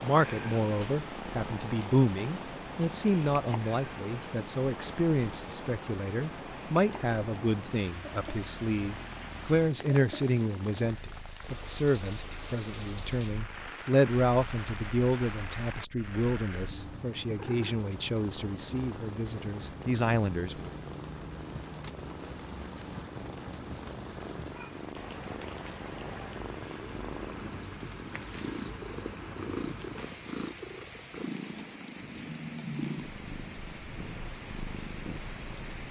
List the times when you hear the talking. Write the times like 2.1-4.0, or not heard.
0.0-20.7.